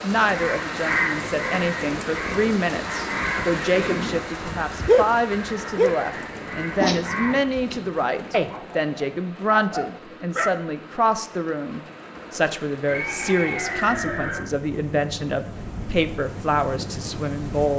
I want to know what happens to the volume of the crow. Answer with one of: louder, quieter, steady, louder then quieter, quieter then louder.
quieter.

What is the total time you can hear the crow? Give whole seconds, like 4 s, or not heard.
7 s.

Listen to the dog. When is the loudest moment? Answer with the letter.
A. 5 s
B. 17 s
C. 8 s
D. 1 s
A.